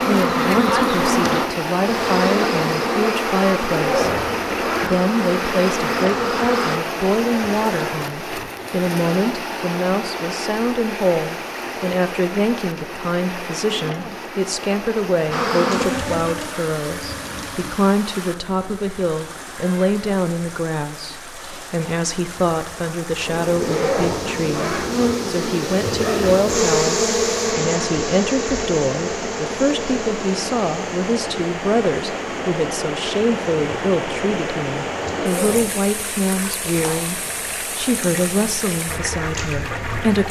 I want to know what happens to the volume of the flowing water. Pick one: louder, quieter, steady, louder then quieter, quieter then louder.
quieter then louder.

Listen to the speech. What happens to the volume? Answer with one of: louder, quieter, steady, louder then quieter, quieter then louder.
steady.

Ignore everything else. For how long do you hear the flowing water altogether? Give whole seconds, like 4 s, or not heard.
40 s.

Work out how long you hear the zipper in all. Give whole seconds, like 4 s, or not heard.
3 s.